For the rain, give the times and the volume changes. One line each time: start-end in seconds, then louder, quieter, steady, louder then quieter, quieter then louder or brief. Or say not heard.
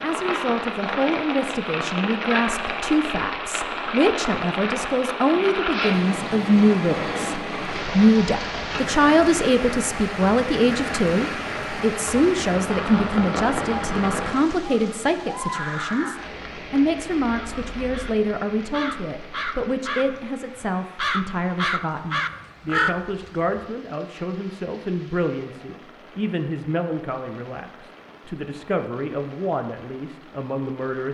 0.0-31.1 quieter.